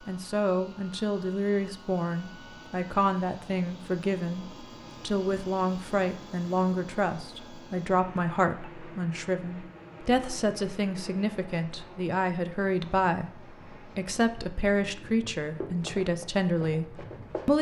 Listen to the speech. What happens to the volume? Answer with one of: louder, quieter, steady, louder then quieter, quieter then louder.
steady.